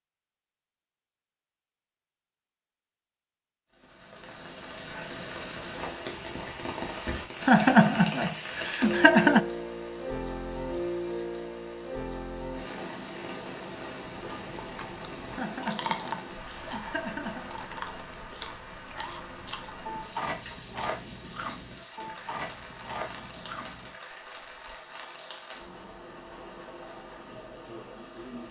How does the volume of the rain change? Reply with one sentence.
The loudness of the rain goes down.